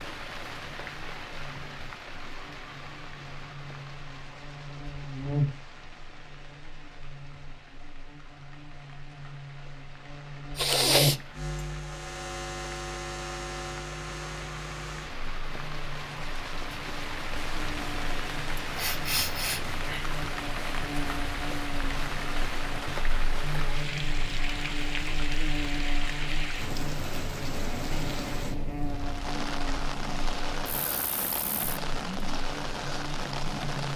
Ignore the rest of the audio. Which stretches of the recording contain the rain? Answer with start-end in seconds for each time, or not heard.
0.0-33.9.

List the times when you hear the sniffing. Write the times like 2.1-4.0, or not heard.
10.6-11.2, 18.8-20.1.